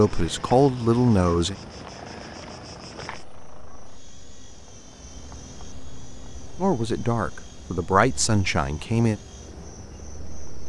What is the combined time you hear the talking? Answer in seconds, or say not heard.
4 s.